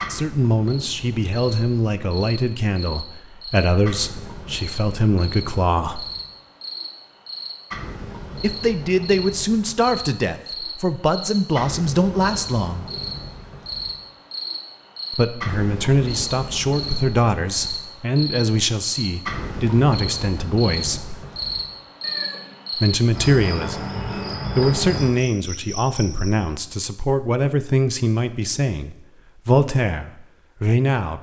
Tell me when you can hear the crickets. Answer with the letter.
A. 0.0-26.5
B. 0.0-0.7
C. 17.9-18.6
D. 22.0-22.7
A.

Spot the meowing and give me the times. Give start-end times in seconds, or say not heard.
22.0-22.7.